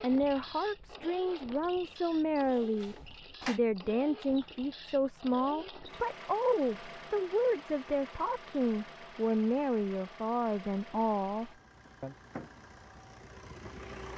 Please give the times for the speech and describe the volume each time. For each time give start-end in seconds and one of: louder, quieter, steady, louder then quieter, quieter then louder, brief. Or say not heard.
0.0-12.2 steady.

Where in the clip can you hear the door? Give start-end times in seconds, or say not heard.
2.4-3.6.